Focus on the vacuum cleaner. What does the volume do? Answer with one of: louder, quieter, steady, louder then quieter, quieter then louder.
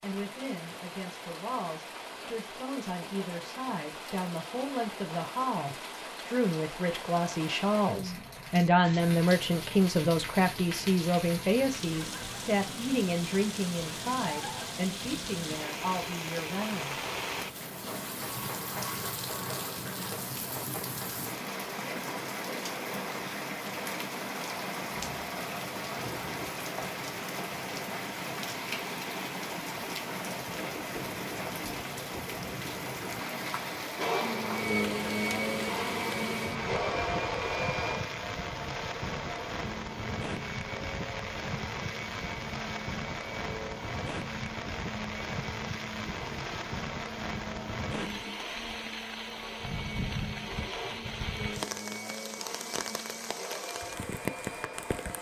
quieter.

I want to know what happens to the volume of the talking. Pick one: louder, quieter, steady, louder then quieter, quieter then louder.
louder then quieter.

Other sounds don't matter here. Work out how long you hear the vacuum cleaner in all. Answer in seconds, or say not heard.
21 s.